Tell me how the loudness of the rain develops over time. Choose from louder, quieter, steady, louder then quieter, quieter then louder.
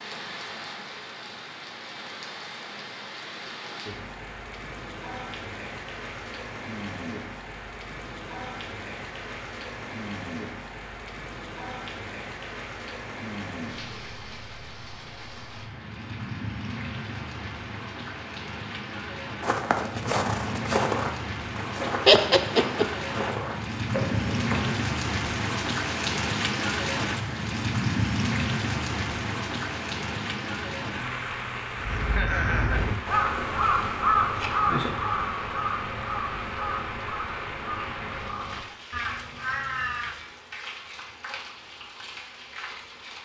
louder then quieter.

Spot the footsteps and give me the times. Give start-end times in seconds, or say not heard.
19.4-24.8.